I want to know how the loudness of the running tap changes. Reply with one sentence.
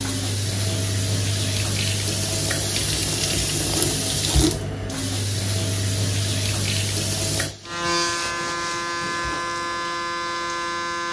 The loudness of the running tap goes down.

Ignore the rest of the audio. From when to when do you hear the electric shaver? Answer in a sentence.
The electric shaver can be heard from 7.7 to 11.0 s.